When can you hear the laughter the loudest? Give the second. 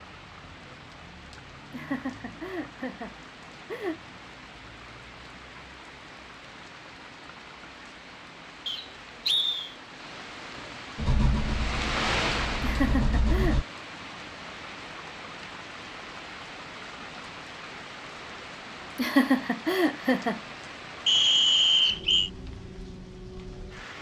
19 s.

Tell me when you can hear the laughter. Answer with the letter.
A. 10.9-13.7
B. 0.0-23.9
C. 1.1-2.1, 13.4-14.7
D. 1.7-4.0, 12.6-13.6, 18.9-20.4
D.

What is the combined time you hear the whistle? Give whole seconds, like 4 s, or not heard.
2 s.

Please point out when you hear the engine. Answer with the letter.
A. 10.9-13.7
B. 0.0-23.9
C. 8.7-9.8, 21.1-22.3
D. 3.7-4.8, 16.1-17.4
A.